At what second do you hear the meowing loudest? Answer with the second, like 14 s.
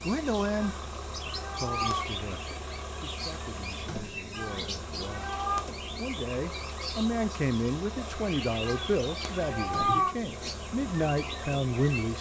10 s.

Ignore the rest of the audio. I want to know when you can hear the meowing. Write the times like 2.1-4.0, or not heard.
0.6-2.2, 4.3-5.7, 8.6-10.2.